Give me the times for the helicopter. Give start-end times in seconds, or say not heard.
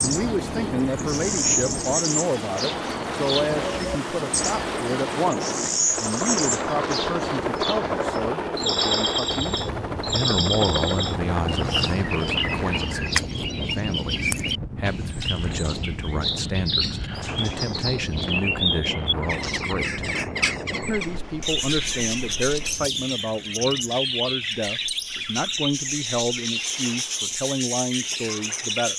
0.0-13.2.